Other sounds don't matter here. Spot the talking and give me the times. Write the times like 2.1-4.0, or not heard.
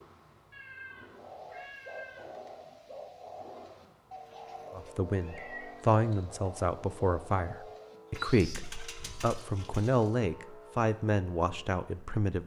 4.7-12.4.